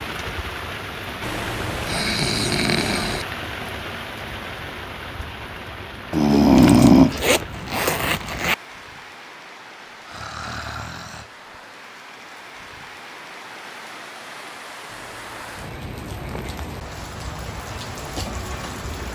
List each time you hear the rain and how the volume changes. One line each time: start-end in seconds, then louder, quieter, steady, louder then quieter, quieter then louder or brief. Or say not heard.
0.0-19.1 quieter then louder.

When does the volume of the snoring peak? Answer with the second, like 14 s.
7 s.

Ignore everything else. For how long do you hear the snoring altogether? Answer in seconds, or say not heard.
6 s.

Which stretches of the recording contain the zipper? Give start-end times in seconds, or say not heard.
6.6-8.6.